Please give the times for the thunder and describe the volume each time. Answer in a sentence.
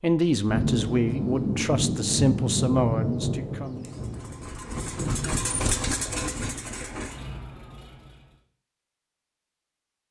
The thunder can be heard from 0.5 to 5.4 s, getting quieter.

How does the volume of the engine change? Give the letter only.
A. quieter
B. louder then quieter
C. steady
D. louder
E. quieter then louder
B.